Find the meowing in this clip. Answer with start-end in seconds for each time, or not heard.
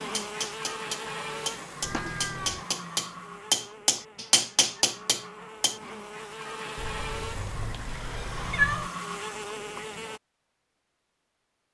1.8-2.6, 6.8-8.9.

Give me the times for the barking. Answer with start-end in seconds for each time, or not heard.
not heard.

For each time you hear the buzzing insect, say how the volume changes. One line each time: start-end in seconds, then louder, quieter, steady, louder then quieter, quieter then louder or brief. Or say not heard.
0.0-10.2 quieter then louder.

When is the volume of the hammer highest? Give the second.
4 s.